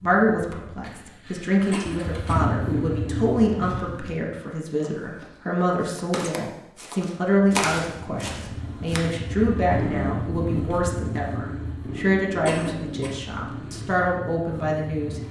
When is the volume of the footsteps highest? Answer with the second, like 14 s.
8 s.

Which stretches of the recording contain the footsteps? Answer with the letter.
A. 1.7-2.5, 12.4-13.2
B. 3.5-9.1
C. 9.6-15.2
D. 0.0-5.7
B.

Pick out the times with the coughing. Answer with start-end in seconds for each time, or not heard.
1.7-2.5, 12.4-13.2.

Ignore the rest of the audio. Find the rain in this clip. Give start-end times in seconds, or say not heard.
not heard.